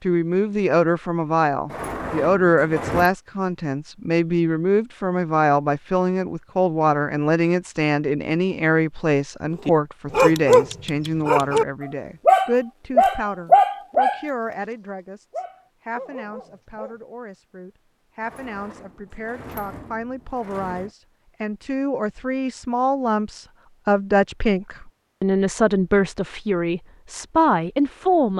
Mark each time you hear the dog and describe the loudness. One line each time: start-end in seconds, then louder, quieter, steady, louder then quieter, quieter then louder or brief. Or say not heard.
9.7-16.9 quieter.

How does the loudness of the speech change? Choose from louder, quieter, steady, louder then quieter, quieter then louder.
quieter then louder.